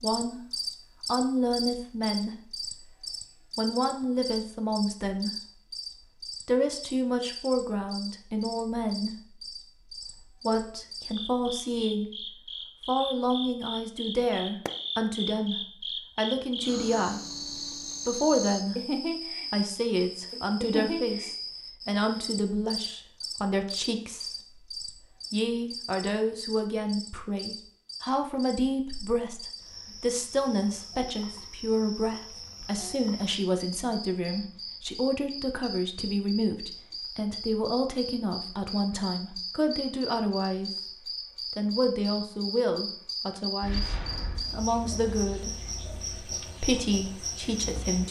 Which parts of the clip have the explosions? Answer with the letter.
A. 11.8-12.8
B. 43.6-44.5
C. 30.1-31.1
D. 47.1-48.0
B.